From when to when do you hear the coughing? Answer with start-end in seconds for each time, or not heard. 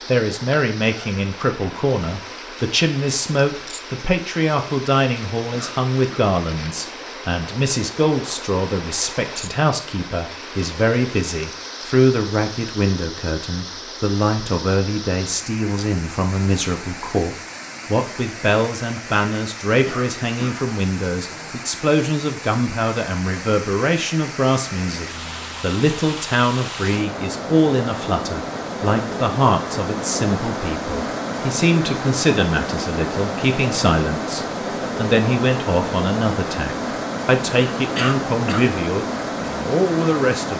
5.5-6.2, 19.9-20.6, 38.0-38.7.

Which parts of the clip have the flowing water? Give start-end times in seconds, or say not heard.
0.0-40.5.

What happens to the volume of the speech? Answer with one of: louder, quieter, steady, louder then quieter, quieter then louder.
steady.